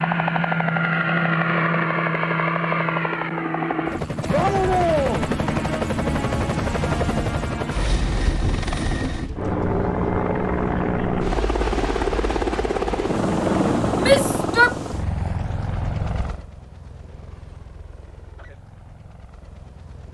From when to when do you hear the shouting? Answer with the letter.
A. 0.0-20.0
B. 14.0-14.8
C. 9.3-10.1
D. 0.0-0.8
B.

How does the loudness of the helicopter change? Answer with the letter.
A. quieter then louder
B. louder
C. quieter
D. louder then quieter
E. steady
C.